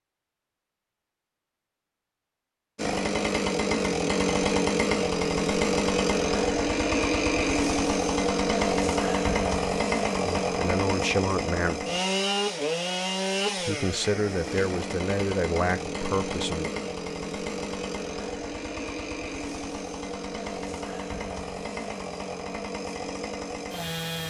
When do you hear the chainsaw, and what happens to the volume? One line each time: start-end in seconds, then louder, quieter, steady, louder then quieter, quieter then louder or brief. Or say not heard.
2.8-24.2 quieter.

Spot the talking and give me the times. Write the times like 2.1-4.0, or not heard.
10.2-11.8, 13.6-16.7.